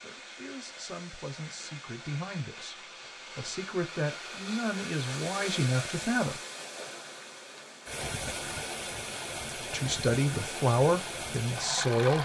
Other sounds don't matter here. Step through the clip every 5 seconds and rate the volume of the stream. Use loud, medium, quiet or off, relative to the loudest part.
medium, loud, loud.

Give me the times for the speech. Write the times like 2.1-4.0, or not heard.
0.0-6.4, 9.6-12.2.